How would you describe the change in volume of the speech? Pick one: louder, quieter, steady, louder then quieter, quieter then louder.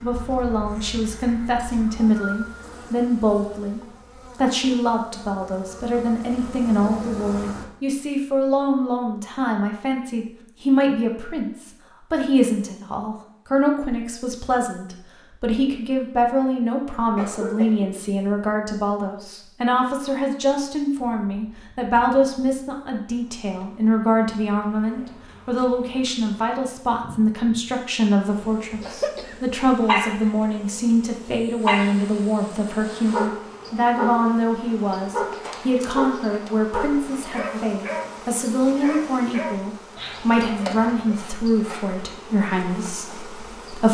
steady.